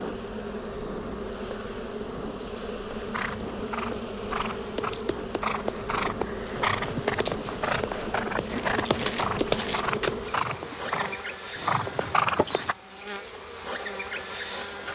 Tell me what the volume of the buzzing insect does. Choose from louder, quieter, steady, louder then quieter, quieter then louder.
steady.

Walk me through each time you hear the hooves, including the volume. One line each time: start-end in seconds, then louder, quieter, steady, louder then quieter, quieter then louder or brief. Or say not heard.
3.0-12.8 louder.